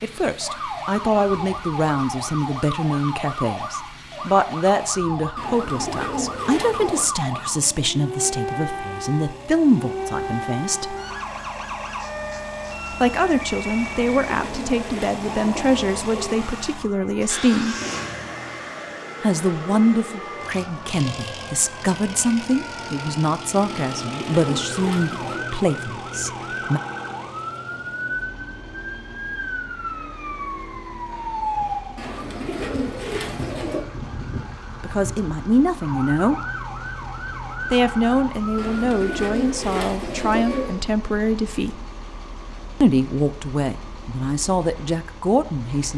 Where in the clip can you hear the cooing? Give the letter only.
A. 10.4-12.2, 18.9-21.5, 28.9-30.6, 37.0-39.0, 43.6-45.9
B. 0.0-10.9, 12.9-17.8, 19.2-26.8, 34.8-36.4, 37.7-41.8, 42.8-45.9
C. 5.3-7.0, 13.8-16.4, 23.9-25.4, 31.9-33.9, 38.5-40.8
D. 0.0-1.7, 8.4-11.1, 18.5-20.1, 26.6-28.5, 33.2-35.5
C.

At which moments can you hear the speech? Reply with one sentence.
You can hear the speech from 0.0 to 10.9 s, from 12.9 to 17.8 s, from 19.2 to 26.8 s, from 34.8 to 36.4 s, from 37.7 to 41.8 s and from 42.8 to 45.9 s.